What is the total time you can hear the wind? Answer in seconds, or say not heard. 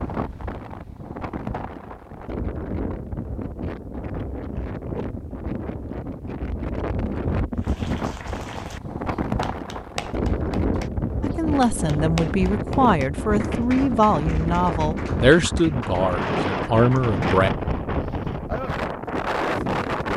20 s.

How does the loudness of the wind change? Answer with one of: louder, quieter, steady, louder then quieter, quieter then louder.
louder.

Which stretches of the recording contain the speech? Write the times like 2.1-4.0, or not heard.
11.2-17.5.